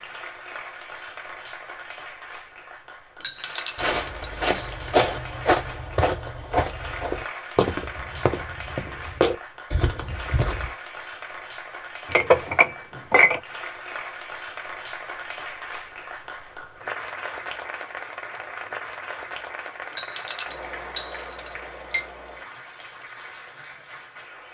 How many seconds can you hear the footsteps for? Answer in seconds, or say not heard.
7 s.